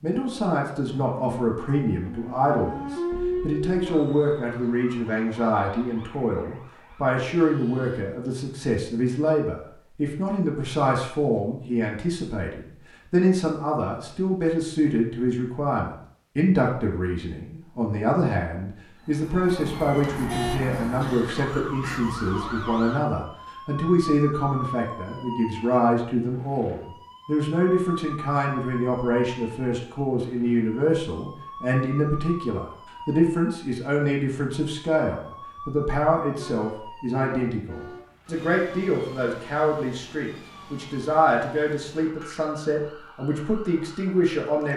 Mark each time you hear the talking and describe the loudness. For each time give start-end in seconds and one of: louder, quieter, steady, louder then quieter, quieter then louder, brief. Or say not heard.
0.0-44.7 steady.